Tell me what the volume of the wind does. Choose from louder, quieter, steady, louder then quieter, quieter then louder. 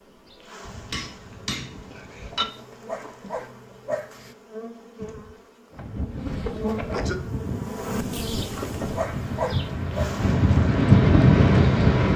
louder.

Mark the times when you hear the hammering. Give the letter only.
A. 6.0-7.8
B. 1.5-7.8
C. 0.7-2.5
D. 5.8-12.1
C.